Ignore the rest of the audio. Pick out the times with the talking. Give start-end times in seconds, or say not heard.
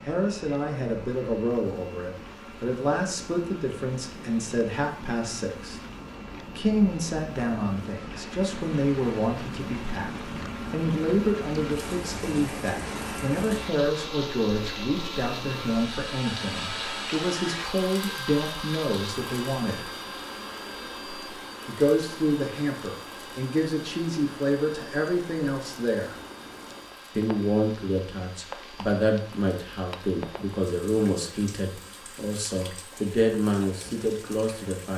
0.1-5.8, 6.5-19.9, 21.6-26.1, 27.1-34.9.